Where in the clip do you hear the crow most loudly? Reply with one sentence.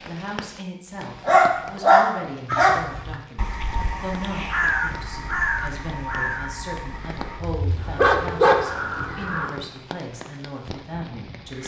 The loudest moment of the crow is at 5 seconds.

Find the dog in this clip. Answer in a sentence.
The dog can be heard from 1.2 to 2.9 s and from 7.4 to 9.3 s.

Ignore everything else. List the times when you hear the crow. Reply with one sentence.
The crow can be heard from 2.5 to 9.5 s.